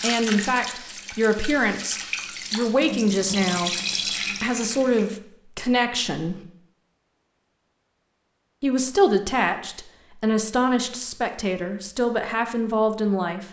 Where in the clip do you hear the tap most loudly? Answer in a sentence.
The loudest moment of the tap is at 4 seconds.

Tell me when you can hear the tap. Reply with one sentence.
You can hear the tap from 0.0 to 5.1 s.